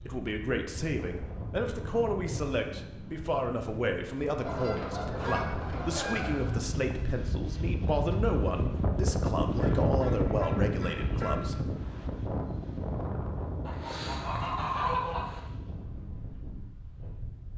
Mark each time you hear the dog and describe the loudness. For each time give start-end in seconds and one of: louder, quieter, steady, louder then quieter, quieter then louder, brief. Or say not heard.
not heard.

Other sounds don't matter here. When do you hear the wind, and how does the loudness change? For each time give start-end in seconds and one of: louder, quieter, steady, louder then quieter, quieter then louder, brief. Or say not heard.
0.0-17.5 louder then quieter.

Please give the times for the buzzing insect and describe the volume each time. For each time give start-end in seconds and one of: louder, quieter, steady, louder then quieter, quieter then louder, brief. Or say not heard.
not heard.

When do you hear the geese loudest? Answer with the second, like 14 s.
15 s.